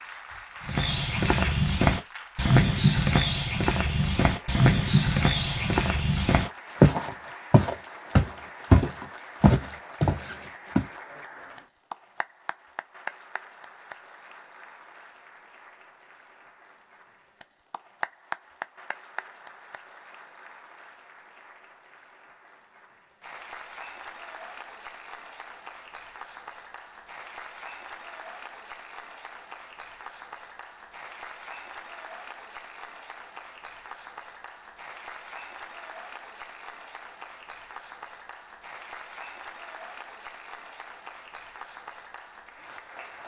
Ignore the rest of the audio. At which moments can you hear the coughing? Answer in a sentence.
You can't hear the coughing here.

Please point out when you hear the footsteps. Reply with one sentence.
You can hear the footsteps from 0.7 to 10.8 s.